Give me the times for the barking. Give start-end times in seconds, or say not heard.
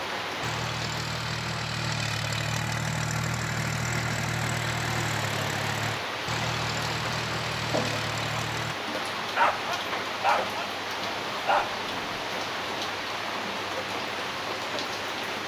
9.3-12.2.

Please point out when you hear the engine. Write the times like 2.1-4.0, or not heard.
0.2-8.8.